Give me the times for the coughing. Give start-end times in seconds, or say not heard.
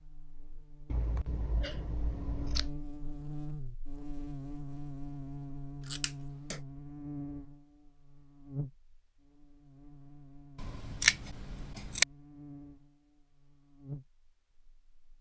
not heard.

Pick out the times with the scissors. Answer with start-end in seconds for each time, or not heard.
0.8-2.8, 5.8-6.6, 10.6-12.1.